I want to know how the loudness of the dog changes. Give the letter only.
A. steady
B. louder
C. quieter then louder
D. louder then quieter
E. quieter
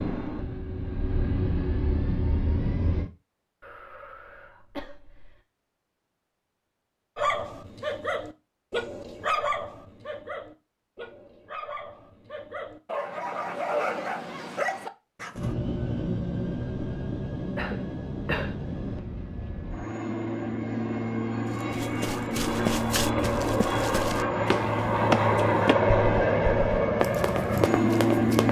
C.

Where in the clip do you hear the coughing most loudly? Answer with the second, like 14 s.
18 s.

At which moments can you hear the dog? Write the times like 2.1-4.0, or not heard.
7.2-15.6.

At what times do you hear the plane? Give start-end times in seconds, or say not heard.
0.0-3.1, 15.3-28.4.